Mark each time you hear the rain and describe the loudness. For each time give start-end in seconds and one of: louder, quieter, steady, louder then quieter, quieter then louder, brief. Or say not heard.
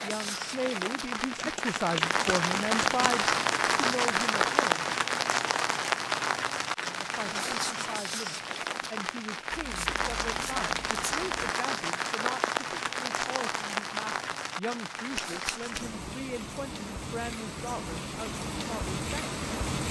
0.0-19.8 quieter.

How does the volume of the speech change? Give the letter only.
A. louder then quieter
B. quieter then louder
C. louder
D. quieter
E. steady
D.